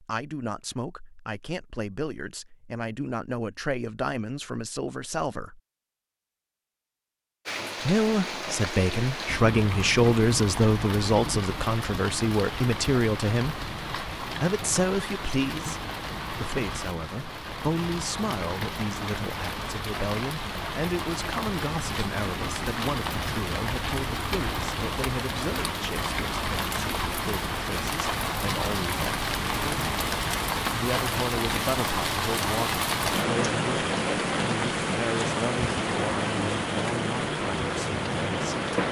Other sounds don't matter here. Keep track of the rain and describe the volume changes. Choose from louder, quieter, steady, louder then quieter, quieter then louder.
louder.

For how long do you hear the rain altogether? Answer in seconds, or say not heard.
31 s.